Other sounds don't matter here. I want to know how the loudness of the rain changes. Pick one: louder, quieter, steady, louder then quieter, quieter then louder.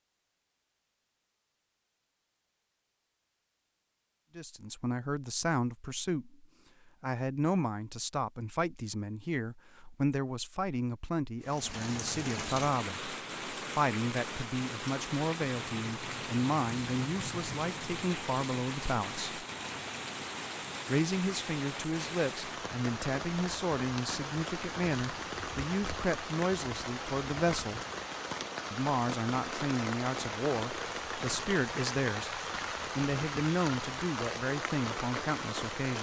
steady.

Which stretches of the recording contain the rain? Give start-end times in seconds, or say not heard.
11.4-35.9.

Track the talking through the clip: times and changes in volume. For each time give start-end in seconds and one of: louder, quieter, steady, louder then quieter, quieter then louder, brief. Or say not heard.
4.3-19.4 steady
20.9-27.8 steady
28.7-35.9 steady.